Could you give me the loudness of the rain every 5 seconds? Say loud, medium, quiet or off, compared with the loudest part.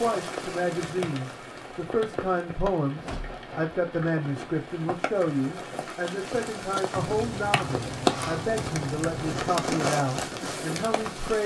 medium, loud, loud.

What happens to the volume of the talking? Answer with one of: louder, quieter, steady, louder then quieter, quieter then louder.
steady.